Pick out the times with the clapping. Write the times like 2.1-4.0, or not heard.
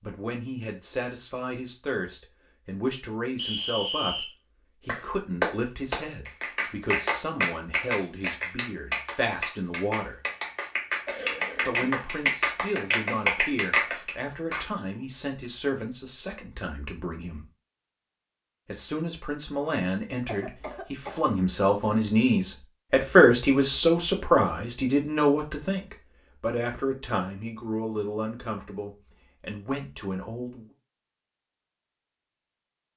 4.8-14.7.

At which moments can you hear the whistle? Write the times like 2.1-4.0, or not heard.
3.4-4.3.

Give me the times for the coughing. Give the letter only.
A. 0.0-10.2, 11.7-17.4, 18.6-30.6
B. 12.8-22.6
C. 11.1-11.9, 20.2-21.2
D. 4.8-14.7
C.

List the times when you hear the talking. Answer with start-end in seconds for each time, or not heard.
0.0-10.2, 11.7-17.4, 18.6-30.6.